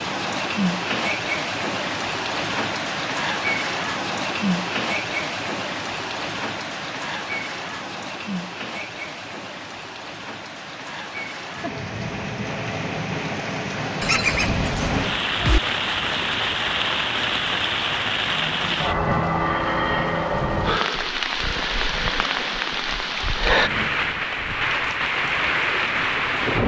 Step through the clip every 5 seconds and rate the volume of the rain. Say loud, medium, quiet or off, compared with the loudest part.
loud, medium, medium, loud, loud, loud.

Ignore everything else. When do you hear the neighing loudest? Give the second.
14 s.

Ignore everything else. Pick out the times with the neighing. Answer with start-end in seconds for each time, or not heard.
14.0-15.6.